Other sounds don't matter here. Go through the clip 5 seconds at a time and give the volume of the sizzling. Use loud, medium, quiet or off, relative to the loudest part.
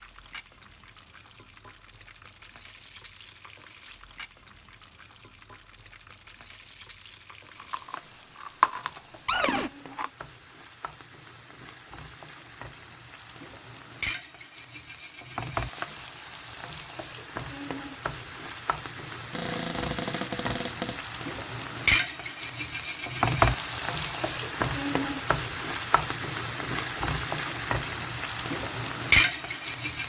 quiet, quiet, quiet, medium, loud, loud.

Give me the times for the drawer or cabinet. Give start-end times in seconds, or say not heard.
9.2-9.7, 19.3-21.0.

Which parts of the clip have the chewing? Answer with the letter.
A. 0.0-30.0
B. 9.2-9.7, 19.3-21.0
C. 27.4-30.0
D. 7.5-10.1
D.